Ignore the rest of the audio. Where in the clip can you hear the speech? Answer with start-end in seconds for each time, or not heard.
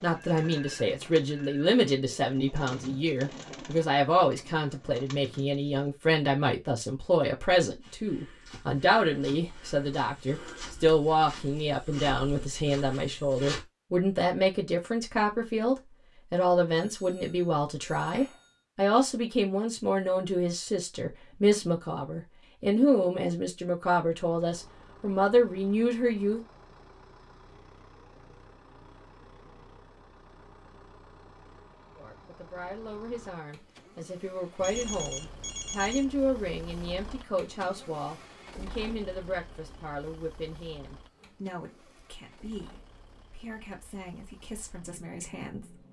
0.0-26.4, 31.9-45.8.